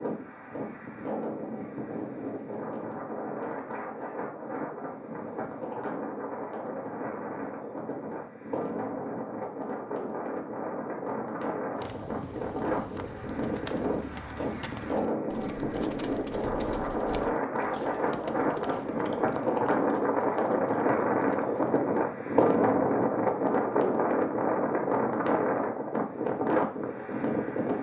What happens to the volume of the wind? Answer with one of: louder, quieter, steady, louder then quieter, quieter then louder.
louder.